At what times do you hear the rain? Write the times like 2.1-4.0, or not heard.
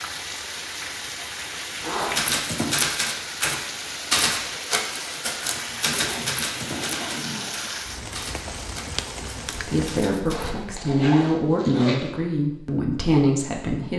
0.0-10.1.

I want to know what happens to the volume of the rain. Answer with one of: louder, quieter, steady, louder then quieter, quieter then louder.
steady.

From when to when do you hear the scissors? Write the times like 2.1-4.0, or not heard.
not heard.